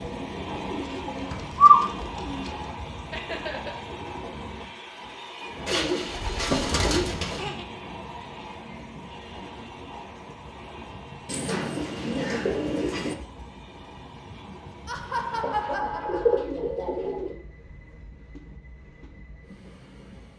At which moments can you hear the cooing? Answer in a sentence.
You can hear the cooing from 0.0 to 2.6 s, from 5.7 to 7.5 s, from 11.2 to 13.2 s and from 15.4 to 17.4 s.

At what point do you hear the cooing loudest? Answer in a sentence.
The volume of the cooing peaks at 2 seconds.